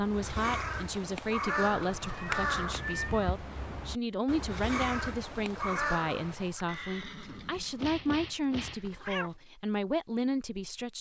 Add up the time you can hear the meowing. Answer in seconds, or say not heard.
3 s.